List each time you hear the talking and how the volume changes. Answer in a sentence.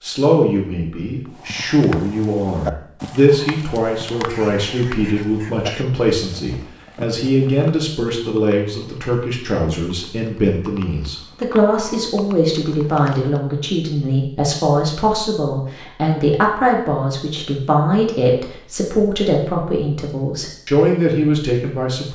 The talking can be heard from 0.0 to 22.1 s, at a steady volume.